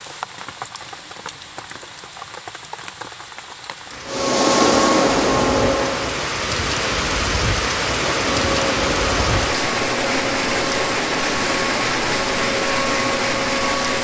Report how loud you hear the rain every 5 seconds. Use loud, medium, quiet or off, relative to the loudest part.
quiet, loud, loud.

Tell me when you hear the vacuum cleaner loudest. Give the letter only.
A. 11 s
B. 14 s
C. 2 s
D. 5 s
D.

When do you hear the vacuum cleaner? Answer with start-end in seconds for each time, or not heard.
4.0-6.2, 8.0-13.9.